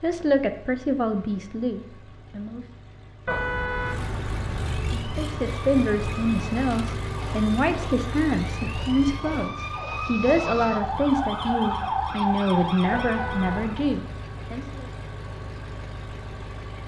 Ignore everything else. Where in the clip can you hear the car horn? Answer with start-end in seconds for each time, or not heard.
3.2-4.9, 12.9-13.8.